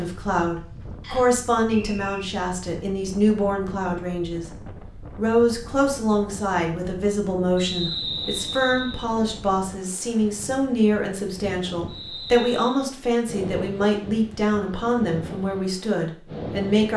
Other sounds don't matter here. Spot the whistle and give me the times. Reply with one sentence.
You can hear the whistle from 1.0 to 2.3 s, from 7.5 to 9.1 s and from 11.8 to 12.8 s.